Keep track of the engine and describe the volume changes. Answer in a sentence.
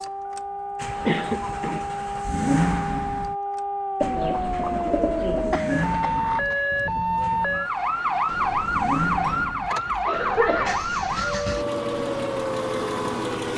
The loudness of the engine goes down, then up.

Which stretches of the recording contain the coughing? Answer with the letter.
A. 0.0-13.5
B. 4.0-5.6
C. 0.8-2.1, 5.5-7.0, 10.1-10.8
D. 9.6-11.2
C.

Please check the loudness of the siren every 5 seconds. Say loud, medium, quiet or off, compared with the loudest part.
medium, loud, loud.